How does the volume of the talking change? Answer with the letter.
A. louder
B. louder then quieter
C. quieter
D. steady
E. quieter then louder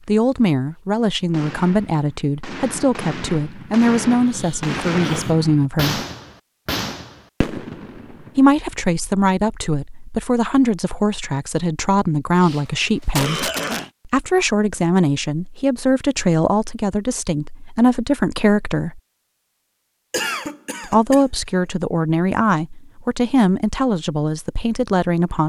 D.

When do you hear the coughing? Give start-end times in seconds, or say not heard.
4.2-5.3, 12.4-13.9, 20.1-21.2.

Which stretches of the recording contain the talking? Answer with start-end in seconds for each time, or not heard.
0.1-6.0, 8.3-19.0, 20.9-25.4.